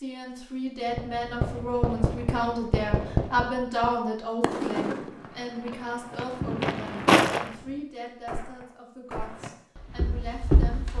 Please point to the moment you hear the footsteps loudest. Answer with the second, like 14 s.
7 s.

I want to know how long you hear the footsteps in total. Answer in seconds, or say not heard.
4 s.